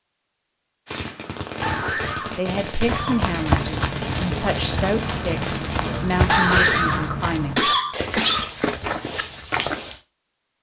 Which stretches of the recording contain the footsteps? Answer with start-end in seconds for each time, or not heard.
2.8-10.0.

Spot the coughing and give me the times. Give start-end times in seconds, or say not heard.
1.1-3.2, 5.8-8.5.